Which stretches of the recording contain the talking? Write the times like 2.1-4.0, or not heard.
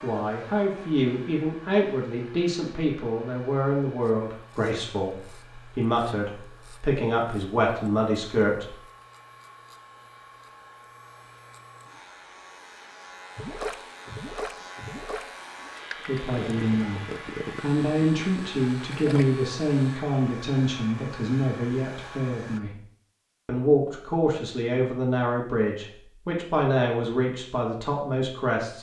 0.0-8.8, 16.1-22.8, 23.4-28.7.